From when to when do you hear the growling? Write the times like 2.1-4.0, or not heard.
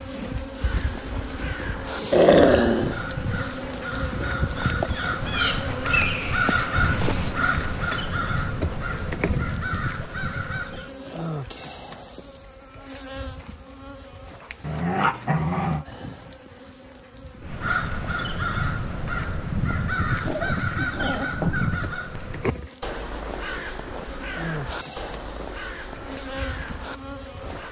2.1-3.0, 14.6-15.8, 20.2-21.7.